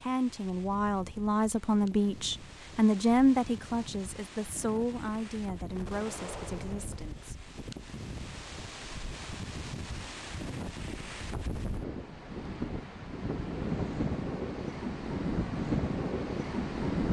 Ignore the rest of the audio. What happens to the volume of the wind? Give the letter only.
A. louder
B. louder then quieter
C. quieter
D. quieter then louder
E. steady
A.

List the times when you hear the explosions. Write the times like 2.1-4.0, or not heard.
5.8-7.3.